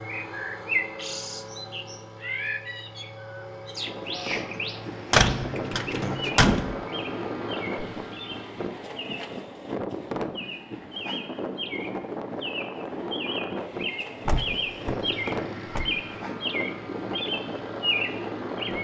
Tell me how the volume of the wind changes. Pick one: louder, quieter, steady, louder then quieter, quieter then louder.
steady.